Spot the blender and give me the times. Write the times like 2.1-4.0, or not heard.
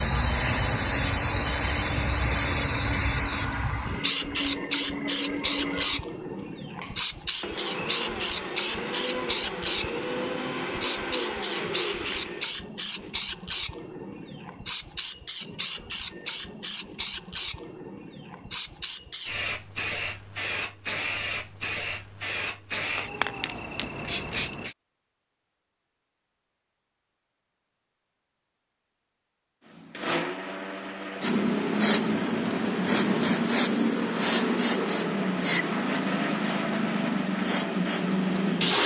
0.0-13.1, 29.7-38.8.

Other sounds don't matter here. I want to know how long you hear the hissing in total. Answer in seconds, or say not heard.
32 s.